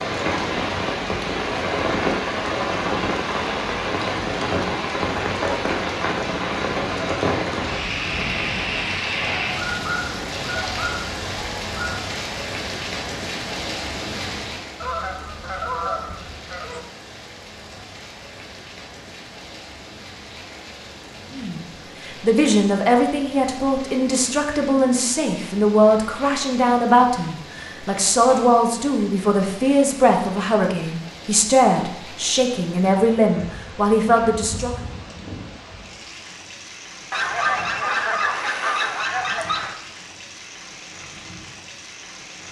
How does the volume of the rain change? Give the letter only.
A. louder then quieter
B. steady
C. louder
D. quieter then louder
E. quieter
E.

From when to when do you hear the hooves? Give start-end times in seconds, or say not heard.
not heard.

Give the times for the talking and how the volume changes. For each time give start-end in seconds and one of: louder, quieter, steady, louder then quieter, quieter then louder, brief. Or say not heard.
21.3-34.7 steady.